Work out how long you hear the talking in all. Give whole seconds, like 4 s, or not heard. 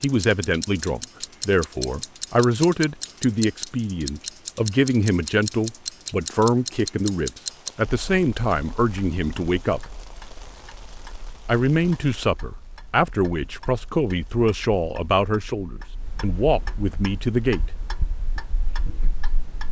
16 s.